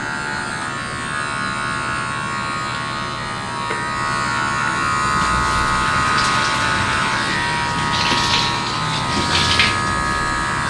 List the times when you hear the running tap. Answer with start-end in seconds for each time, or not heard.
5.0-10.6.